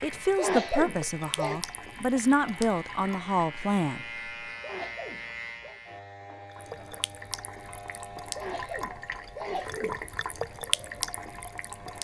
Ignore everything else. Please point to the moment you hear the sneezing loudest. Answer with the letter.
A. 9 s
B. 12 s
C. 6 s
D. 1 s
D.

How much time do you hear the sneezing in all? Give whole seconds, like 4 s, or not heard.
4 s.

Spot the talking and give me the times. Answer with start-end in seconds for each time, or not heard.
0.0-4.0.